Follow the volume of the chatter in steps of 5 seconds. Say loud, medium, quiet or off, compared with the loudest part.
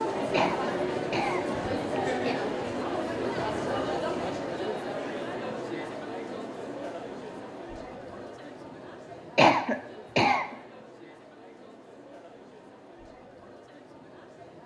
loud, medium, quiet.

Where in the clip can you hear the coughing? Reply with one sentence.
The coughing can be heard from 0.3 to 2.4 s and from 9.3 to 10.4 s.